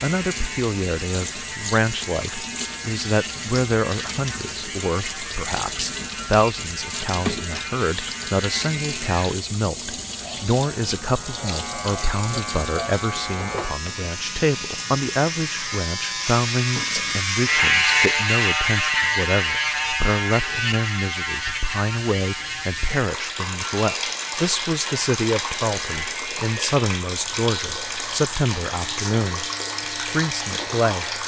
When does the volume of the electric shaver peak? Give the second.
18 s.